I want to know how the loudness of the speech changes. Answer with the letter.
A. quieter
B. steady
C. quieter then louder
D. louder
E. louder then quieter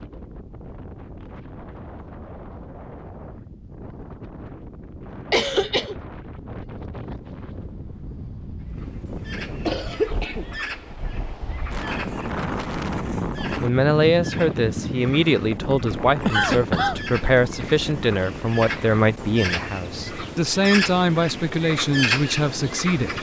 B.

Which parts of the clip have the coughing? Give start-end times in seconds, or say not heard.
5.3-6.0, 9.7-10.5, 16.2-17.0.